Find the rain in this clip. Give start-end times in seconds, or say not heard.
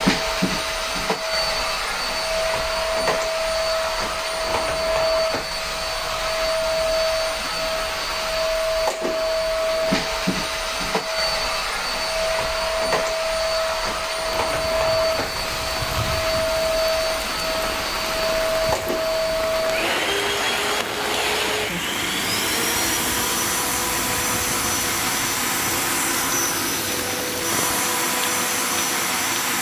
14.2-29.5.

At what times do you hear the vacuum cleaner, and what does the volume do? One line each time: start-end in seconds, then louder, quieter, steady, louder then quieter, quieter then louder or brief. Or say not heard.
0.0-29.5 steady.